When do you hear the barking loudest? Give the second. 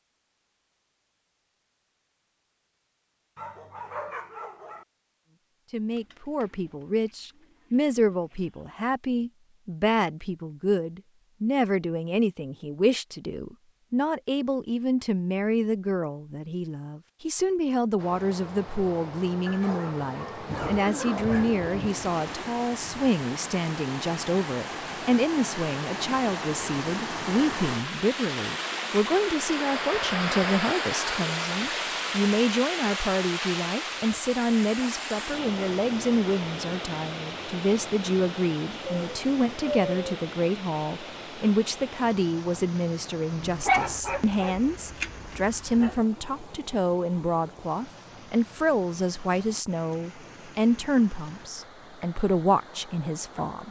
44 s.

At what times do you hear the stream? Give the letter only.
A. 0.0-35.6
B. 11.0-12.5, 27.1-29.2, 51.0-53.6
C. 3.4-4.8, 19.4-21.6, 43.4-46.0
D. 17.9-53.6
D.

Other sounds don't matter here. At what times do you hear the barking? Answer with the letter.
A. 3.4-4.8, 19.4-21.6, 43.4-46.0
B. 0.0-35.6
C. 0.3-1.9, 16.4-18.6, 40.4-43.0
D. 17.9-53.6
A.